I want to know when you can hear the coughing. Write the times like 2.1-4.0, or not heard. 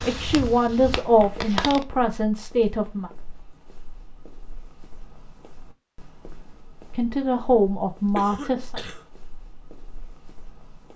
8.2-9.1.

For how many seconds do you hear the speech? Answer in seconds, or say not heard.
5 s.